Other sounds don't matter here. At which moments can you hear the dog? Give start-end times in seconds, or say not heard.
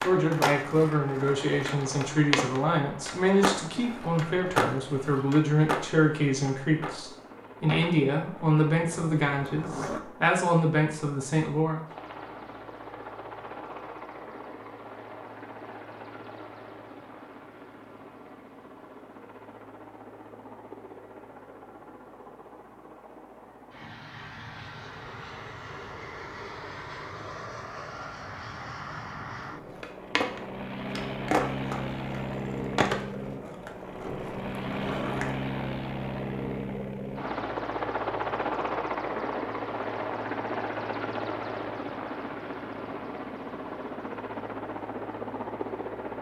not heard.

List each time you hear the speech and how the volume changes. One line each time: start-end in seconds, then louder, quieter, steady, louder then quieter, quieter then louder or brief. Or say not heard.
0.0-11.8 steady.